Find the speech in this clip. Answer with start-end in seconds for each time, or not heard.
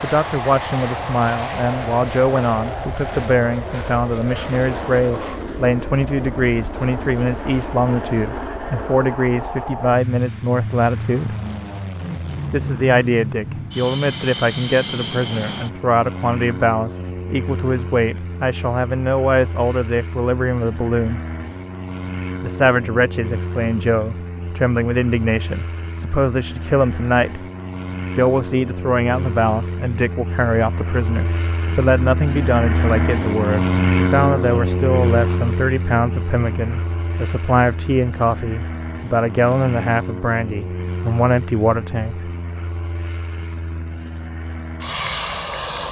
0.0-11.3, 12.5-21.2, 22.4-27.4, 28.1-42.3.